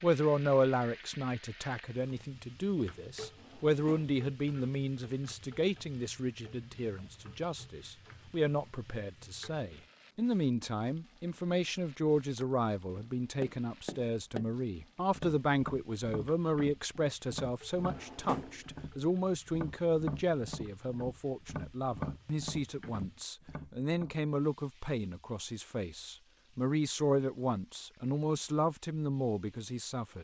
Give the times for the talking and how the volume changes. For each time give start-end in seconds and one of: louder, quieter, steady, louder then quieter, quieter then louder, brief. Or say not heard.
0.0-30.1 steady.